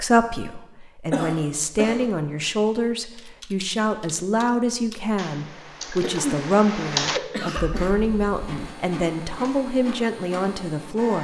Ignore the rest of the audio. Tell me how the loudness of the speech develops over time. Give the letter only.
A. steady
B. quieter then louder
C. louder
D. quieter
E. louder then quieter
A.